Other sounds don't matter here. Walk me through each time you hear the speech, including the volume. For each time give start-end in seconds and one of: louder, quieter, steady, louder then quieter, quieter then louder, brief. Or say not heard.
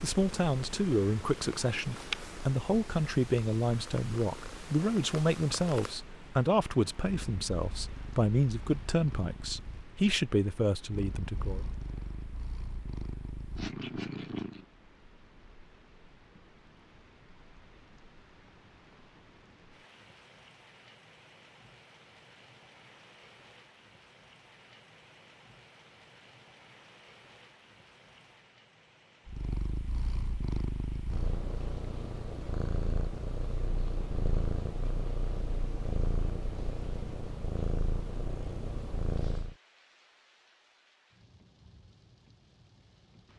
0.0-11.7 steady.